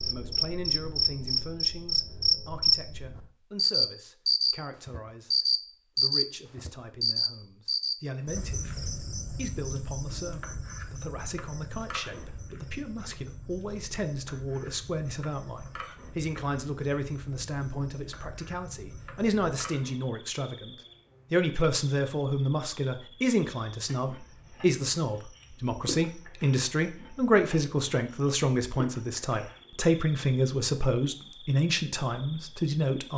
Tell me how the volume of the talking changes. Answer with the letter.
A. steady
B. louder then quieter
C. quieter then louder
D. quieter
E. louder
E.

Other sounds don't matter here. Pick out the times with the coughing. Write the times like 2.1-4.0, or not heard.
not heard.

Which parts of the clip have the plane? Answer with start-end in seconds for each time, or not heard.
not heard.